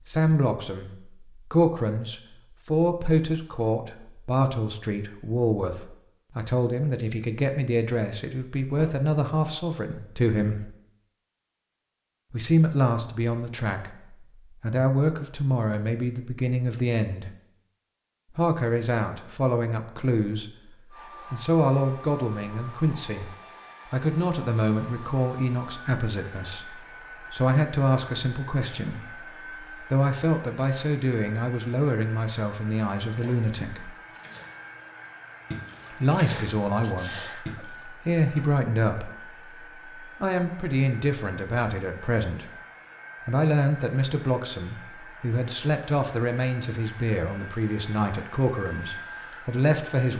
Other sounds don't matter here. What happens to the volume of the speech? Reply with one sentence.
The volume of the speech stays about the same.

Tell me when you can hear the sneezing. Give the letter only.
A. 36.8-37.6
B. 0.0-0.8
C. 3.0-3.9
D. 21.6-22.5
A.